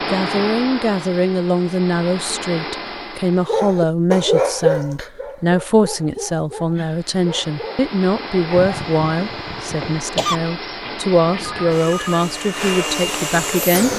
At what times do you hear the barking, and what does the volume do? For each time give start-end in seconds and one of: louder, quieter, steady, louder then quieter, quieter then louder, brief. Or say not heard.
3.5-8.8 quieter.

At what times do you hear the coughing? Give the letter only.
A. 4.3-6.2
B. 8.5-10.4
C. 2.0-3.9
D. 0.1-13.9
B.